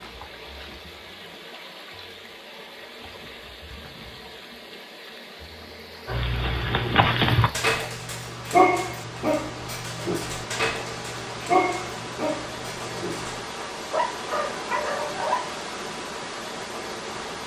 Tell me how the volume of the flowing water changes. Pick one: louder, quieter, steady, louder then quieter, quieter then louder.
louder.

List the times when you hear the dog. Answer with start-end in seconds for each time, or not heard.
6.0-15.6.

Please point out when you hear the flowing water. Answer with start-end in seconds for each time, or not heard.
0.0-17.4.